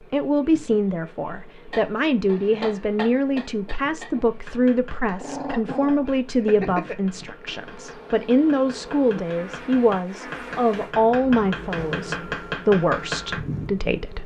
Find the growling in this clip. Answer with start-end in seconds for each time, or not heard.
5.2-7.0.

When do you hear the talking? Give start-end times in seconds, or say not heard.
0.1-14.2.